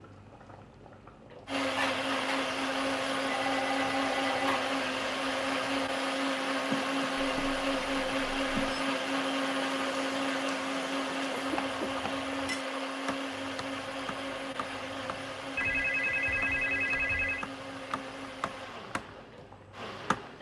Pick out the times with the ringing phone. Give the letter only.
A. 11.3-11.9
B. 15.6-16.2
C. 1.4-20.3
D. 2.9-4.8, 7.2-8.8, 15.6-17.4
D.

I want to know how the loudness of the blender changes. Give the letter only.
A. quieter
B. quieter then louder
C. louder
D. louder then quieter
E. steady
A.